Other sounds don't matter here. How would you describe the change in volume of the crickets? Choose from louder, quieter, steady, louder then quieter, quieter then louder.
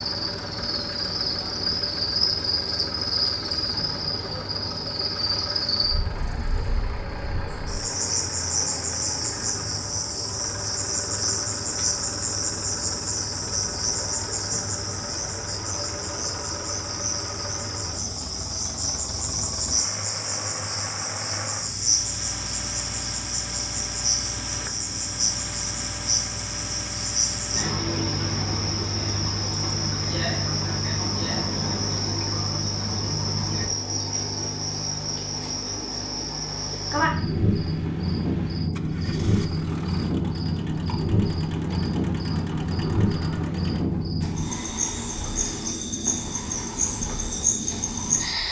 steady.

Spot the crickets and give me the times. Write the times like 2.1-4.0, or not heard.
0.0-48.4.